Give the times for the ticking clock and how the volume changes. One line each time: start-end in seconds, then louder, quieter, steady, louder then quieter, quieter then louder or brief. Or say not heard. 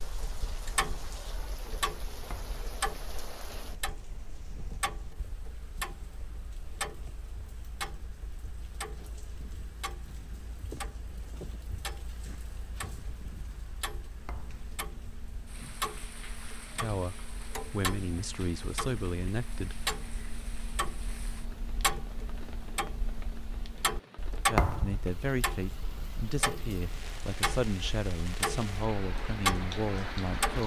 0.0-30.6 louder.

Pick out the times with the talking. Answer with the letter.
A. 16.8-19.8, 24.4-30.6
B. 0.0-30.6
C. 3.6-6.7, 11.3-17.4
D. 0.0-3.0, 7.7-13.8
A.